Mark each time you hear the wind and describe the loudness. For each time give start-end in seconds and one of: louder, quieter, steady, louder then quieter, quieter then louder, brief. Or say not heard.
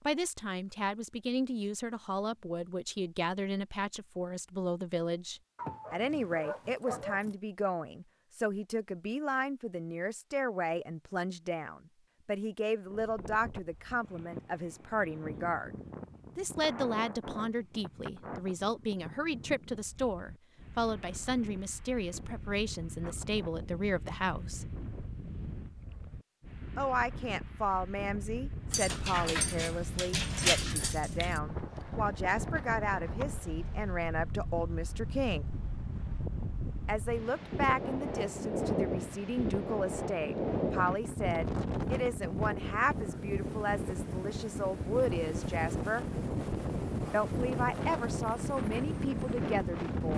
12.8-50.1 louder.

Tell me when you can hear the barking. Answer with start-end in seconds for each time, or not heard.
5.5-7.3, 28.7-31.4.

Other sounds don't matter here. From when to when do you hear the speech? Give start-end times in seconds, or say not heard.
0.0-15.8, 16.4-24.7, 26.8-35.5, 36.9-46.0, 47.1-50.1.